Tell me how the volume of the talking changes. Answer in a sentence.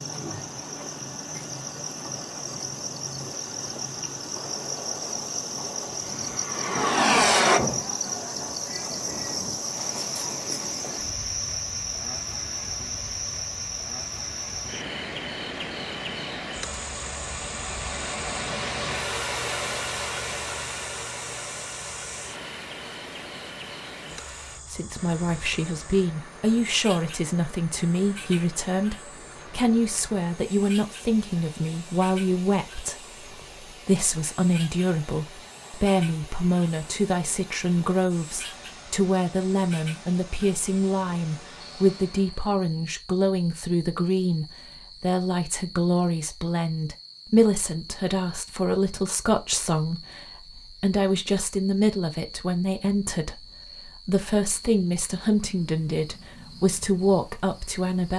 The volume of the talking stays about the same.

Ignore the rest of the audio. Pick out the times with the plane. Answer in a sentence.
You can hear the plane from 4.4 to 7.6 s.